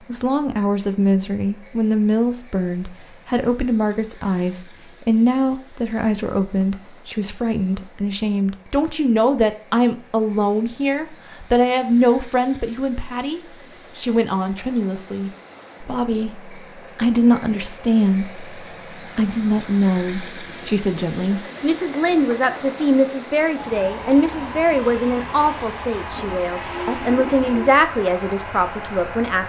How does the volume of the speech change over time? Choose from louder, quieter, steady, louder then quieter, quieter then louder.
steady.